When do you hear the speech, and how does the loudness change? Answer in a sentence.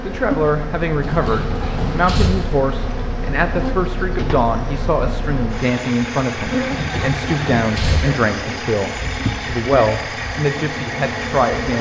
You can hear the speech from 0.0 to 11.7 s, at a steady volume.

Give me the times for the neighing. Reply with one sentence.
The neighing can be heard from 1.0 to 2.3 s and from 6.7 to 8.1 s.